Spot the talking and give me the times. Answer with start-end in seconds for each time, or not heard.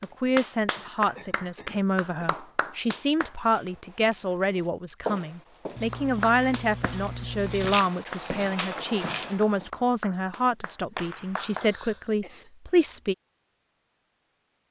0.0-13.2.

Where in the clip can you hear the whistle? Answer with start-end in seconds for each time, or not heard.
not heard.